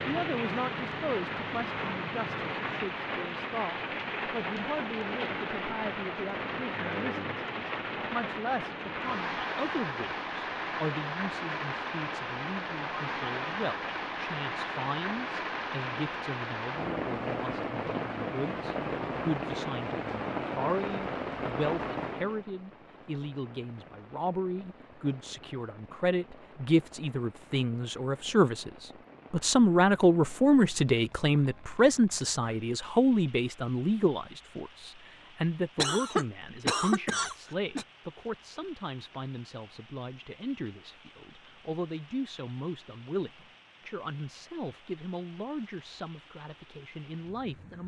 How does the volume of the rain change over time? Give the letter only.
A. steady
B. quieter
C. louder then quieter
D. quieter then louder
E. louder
B.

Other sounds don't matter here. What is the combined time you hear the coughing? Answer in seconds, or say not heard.
2 s.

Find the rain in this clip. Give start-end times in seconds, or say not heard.
0.0-47.8.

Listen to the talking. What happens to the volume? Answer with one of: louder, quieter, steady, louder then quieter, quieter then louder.
louder then quieter.